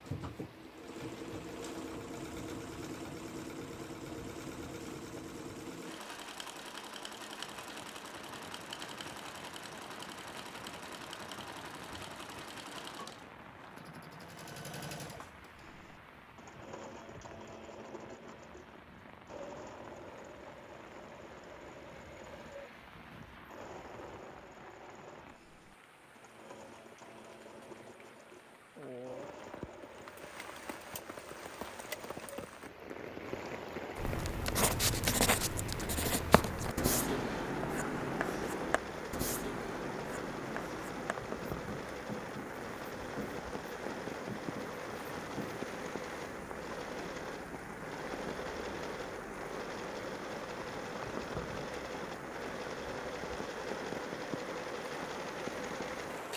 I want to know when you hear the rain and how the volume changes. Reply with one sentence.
You can hear the rain from 0.0 to 56.3 s, getting louder.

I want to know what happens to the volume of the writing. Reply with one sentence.
The volume of the writing goes down.